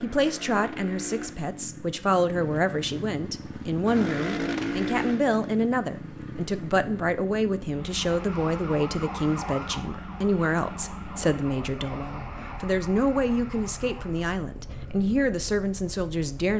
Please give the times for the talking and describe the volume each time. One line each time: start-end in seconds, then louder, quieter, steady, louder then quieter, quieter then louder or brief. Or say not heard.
0.0-16.5 steady.